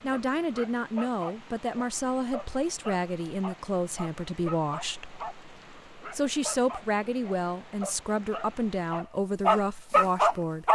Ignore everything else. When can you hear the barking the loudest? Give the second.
10 s.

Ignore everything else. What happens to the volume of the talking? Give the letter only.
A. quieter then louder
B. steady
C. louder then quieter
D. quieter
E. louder
B.